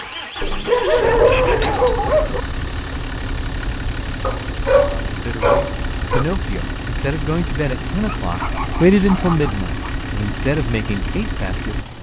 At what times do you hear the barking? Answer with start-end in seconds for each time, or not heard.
0.4-2.4, 4.2-6.2, 8.2-9.9.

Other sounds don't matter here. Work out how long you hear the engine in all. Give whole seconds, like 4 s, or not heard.
12 s.